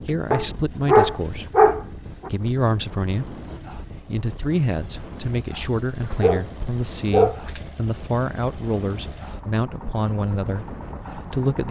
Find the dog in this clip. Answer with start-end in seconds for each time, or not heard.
0.3-2.3, 6.0-7.6.